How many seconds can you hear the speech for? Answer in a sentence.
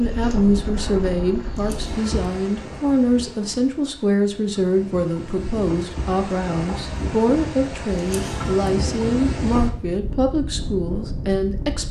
The speech can be heard for 12 seconds in total.